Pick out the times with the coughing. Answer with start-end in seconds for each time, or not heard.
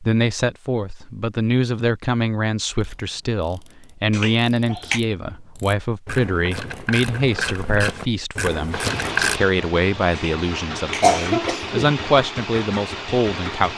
4.1-5.0, 10.2-11.9.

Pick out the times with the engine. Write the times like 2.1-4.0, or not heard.
8.7-13.7.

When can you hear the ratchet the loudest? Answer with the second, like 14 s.
9 s.